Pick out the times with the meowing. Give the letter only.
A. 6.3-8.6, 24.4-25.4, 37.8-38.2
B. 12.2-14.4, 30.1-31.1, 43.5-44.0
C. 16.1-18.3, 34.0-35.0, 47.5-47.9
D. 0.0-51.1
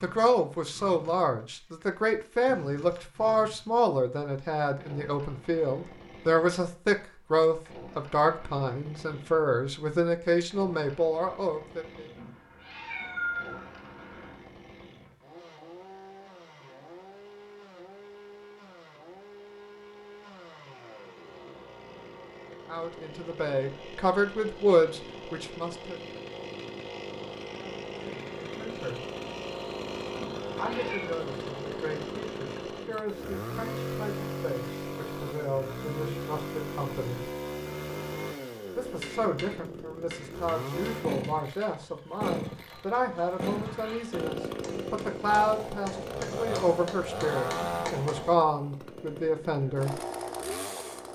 B.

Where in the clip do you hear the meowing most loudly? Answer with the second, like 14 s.
13 s.